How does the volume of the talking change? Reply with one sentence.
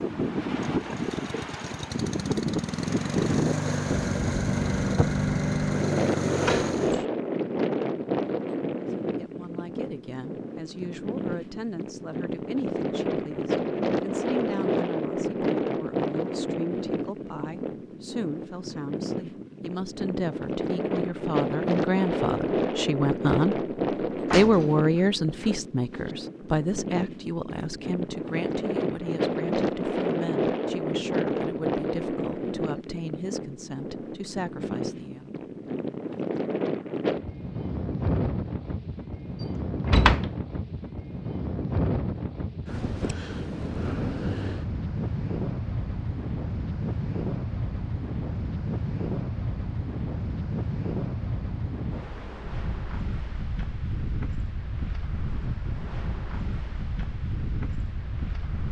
The volume of the talking goes up, then down.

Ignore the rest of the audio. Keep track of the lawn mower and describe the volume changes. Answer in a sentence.
The volume of the lawn mower goes up.